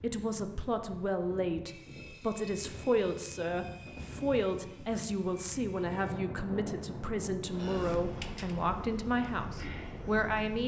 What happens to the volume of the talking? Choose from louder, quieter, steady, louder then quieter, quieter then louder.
steady.